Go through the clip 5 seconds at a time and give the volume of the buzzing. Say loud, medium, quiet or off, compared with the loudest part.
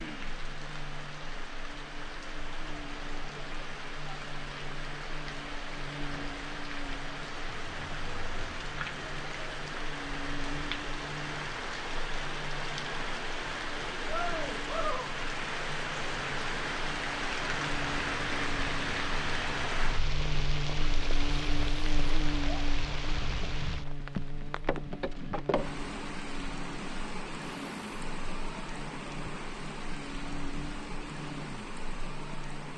medium, medium, medium, medium, loud, medium, medium.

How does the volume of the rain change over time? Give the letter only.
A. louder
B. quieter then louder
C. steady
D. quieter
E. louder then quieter
E.